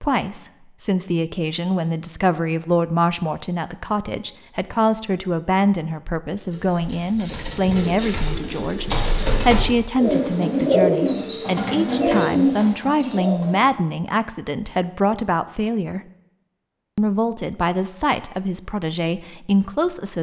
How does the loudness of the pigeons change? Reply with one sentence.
The volume of the pigeons goes up.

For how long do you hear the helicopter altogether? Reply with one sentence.
You can't hear the helicopter here.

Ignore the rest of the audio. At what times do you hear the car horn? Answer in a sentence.
The car horn can't be heard in this clip.